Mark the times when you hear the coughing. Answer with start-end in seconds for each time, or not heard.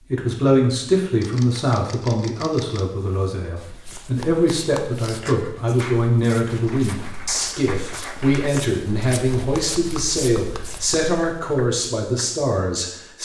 not heard.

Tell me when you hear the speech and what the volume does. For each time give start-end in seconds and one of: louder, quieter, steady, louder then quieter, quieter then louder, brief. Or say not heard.
0.0-13.2 steady.